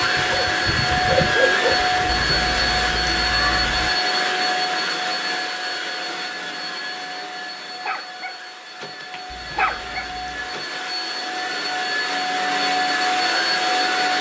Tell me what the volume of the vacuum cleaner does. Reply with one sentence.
The volume of the vacuum cleaner goes down, then up.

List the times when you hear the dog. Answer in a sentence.
You can hear the dog from 0.0 to 2.3 s and from 7.8 to 10.9 s.